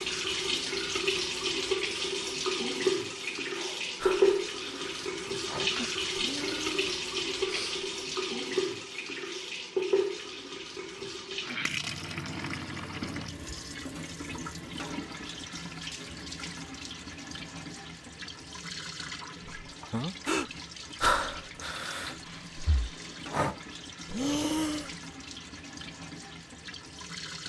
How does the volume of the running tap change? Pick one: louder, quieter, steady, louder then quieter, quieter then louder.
quieter.